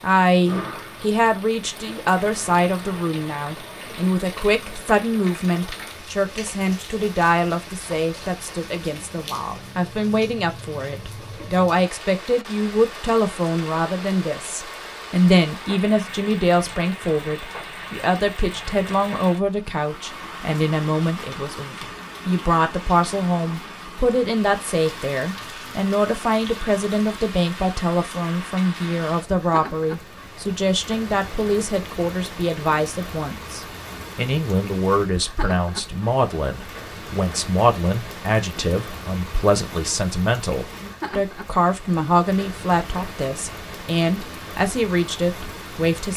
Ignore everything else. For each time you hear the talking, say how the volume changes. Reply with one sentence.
You can hear the talking from 0.0 to 46.1 s, at a steady volume.